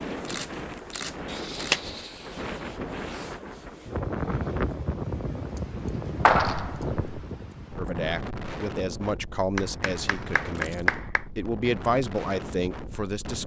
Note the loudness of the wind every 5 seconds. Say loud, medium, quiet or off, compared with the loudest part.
loud, loud, medium.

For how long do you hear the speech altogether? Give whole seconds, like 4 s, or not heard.
6 s.